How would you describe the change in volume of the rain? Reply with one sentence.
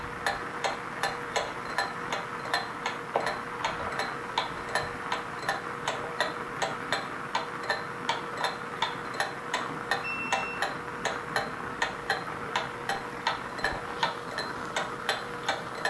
The loudness of the rain stays about the same.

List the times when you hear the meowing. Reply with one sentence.
You can't hear the meowing here.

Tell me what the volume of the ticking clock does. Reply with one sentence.
The loudness of the ticking clock stays about the same.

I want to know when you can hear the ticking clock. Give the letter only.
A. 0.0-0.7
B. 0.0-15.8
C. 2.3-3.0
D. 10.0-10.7
B.